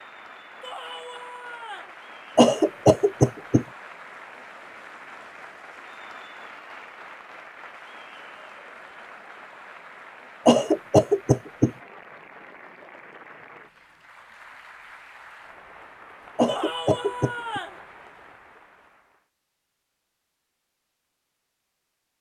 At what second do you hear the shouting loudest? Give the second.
17 s.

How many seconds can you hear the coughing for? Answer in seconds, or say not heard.
4 s.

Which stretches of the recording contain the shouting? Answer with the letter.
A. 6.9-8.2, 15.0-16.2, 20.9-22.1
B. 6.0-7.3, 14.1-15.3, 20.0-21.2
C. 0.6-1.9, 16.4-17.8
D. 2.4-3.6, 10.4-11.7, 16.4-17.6
C.